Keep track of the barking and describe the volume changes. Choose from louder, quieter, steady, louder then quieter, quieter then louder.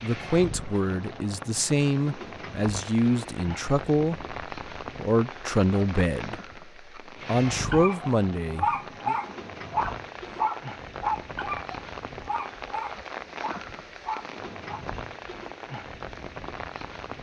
quieter.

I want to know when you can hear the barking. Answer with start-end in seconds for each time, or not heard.
7.7-14.8.